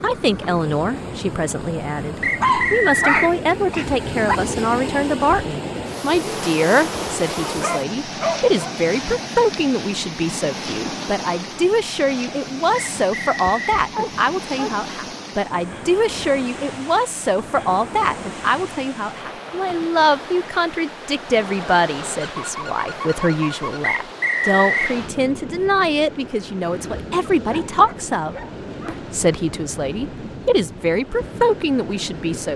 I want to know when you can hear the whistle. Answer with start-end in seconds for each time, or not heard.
2.2-3.4, 12.8-13.8, 23.8-24.9.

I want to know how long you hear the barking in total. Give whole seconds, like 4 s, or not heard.
9 s.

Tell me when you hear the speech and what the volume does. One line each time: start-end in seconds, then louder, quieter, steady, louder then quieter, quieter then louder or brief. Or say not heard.
0.0-32.5 steady.